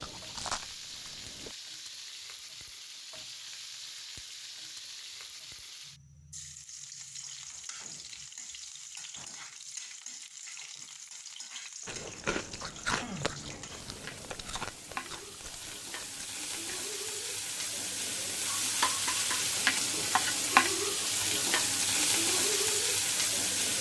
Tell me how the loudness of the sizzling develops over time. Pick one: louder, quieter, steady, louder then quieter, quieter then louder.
louder.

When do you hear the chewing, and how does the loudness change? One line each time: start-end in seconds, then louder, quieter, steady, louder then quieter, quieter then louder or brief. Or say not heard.
0.0-1.6 brief
11.8-16.9 quieter.